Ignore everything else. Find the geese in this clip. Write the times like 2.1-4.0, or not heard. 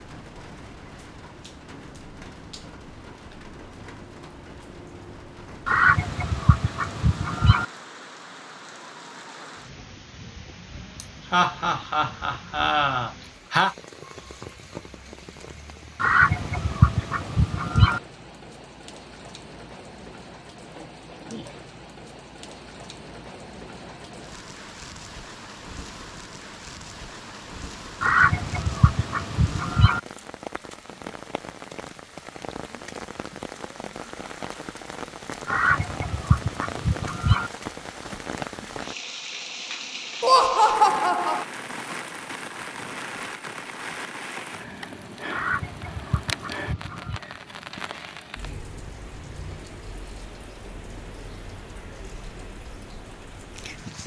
5.7-7.7, 16.0-18.0, 28.0-30.0, 35.5-37.5, 45.3-47.2.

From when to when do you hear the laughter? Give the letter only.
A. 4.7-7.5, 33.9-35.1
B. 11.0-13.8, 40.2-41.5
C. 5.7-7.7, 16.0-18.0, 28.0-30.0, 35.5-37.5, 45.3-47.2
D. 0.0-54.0
B.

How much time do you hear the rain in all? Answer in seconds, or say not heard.
54 s.